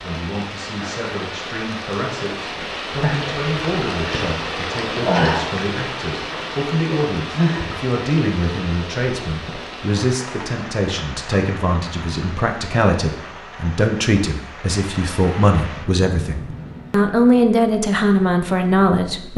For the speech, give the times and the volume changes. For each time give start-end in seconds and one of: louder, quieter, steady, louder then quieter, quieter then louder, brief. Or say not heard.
0.0-19.3 louder.